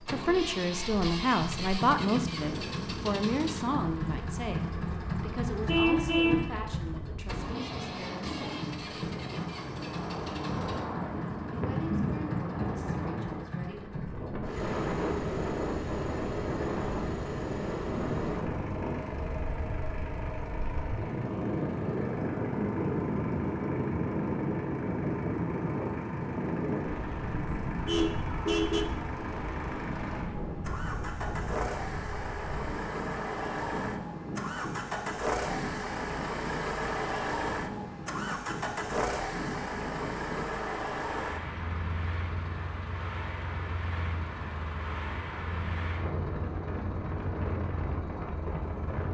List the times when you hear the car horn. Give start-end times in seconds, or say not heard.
5.7-6.5, 27.7-28.9.